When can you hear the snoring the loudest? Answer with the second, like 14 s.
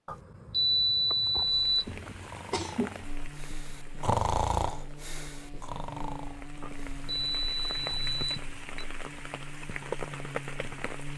4 s.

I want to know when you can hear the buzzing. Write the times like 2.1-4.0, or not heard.
3.0-11.1.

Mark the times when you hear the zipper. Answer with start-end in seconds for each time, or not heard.
not heard.